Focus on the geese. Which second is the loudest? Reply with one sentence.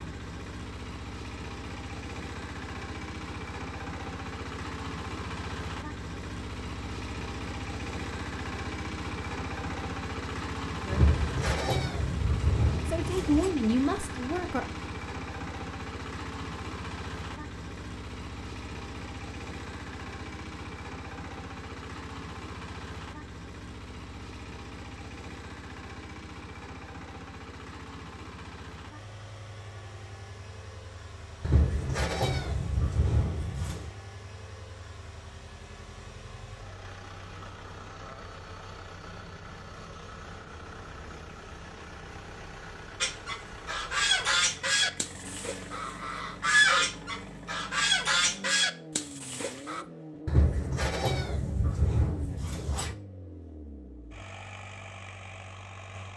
The volume of the geese peaks at 47 seconds.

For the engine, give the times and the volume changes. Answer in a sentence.
The engine can be heard from 0.0 to 56.1 s, getting quieter.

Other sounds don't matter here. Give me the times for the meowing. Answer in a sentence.
The meowing can be heard from 10.9 to 13.5 s, from 31.4 to 33.9 s and from 50.2 to 53.0 s.